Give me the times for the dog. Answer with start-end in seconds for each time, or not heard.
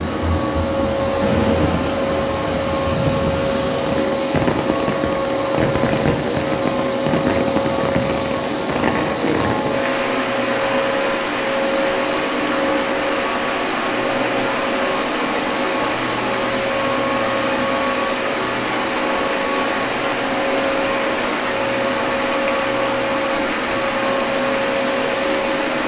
not heard.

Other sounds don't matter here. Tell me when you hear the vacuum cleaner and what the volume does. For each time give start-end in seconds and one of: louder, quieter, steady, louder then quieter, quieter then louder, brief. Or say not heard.
0.0-25.8 steady.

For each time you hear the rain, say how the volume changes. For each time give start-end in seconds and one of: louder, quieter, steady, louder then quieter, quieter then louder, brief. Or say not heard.
0.0-25.8 steady.